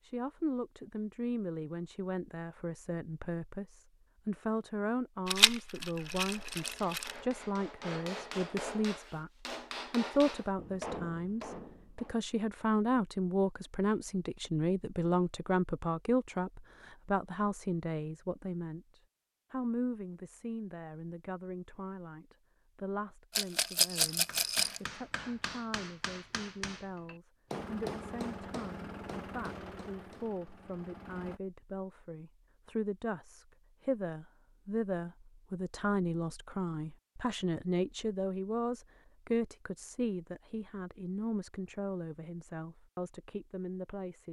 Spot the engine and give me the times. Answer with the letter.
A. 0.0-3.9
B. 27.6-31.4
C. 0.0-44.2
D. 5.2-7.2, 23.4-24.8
B.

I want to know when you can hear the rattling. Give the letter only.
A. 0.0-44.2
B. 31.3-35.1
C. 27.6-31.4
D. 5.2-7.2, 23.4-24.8
D.